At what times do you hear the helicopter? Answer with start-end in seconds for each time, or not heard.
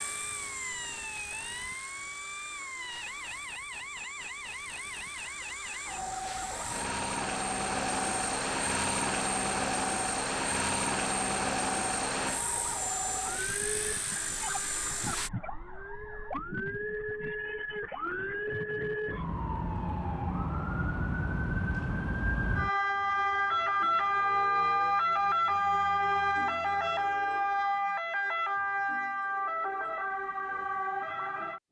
0.0-15.3.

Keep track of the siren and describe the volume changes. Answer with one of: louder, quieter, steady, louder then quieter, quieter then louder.
louder.